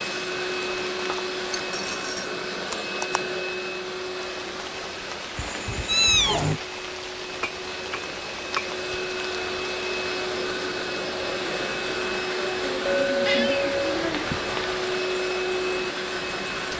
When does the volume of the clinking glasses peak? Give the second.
13 s.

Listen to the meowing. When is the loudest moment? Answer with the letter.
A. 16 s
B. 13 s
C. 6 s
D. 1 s
C.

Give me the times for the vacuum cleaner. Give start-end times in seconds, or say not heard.
0.0-16.7.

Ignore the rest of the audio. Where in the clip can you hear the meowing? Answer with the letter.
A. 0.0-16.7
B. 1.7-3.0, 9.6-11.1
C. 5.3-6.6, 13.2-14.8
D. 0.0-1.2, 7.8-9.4
C.